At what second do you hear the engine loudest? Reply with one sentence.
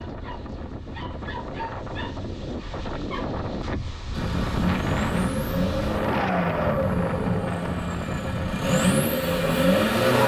The volume of the engine peaks at 10 seconds.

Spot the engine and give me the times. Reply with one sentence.
The engine can be heard from 4.1 to 10.2 s.